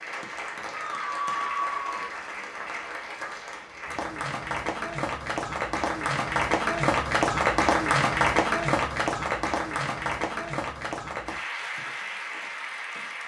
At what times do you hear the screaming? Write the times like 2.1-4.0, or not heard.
0.8-2.0.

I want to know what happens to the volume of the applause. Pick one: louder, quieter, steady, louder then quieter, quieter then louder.
louder then quieter.